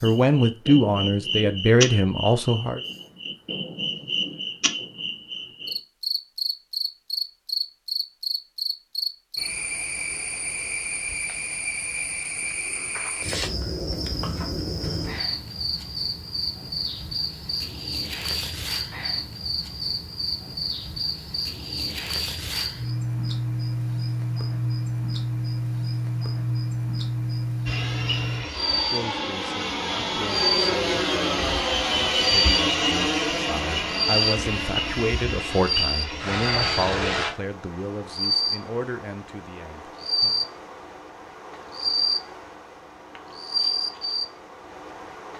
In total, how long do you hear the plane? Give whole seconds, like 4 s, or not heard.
10 s.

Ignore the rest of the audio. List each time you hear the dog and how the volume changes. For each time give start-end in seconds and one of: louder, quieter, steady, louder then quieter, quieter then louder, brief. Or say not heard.
not heard.